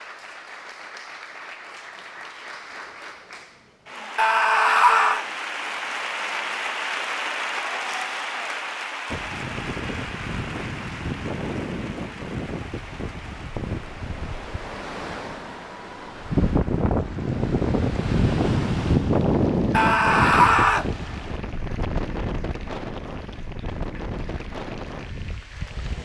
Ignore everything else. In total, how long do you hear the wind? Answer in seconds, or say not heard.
17 s.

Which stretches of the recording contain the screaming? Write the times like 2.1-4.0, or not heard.
4.2-5.2, 19.7-20.9.